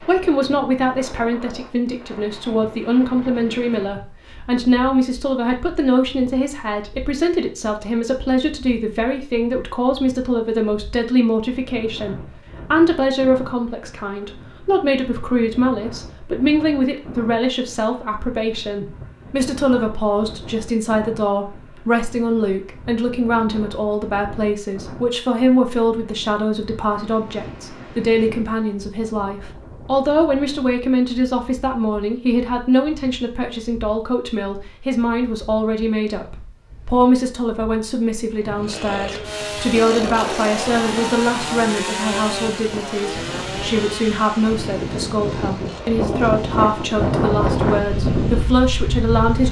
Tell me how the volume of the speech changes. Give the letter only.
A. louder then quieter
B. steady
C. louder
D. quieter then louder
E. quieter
B.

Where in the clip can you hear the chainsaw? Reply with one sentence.
The chainsaw can be heard from 38.6 to 49.4 s.